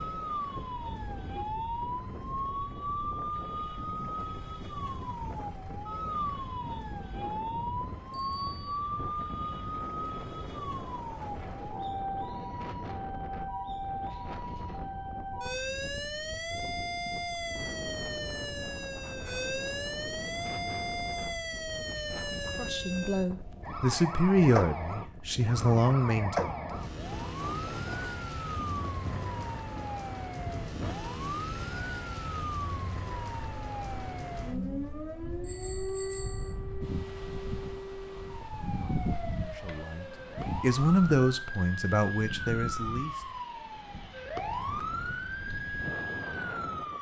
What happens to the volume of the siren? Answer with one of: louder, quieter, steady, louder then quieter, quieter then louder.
steady.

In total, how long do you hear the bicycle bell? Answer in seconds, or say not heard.
3 s.